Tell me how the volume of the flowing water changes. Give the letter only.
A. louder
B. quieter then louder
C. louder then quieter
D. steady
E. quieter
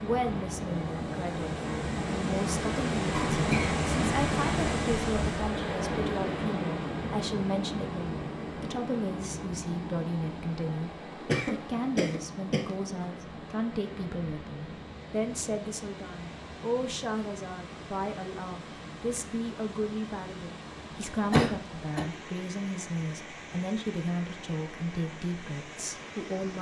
E.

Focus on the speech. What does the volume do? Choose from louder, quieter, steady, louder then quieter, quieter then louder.
steady.